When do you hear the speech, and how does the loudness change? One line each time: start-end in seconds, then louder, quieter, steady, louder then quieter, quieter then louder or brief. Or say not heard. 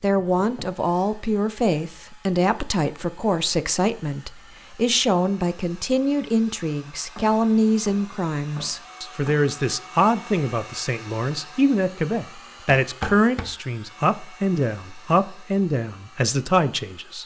0.0-17.2 steady.